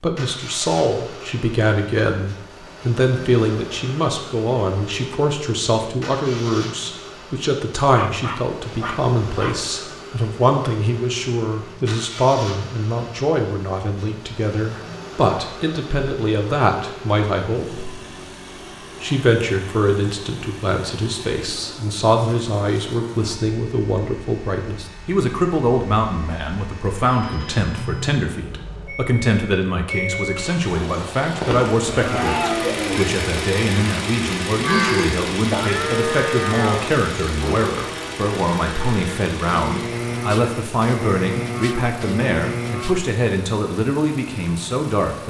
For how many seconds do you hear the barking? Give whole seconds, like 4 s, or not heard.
2 s.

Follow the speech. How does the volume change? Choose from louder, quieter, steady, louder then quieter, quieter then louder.
steady.